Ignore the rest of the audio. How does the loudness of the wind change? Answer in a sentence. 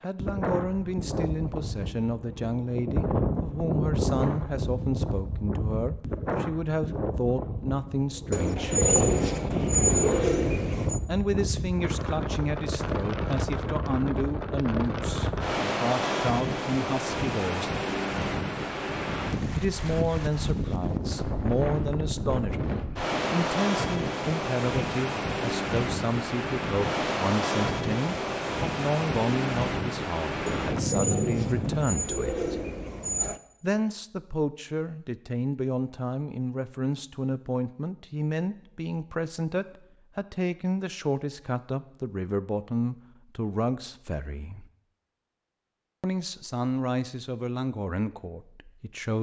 The loudness of the wind stays about the same.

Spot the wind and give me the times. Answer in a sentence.
The wind can be heard from 0.0 to 31.9 s.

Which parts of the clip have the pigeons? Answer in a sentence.
The pigeons can be heard from 8.3 to 11.0 s and from 30.4 to 33.4 s.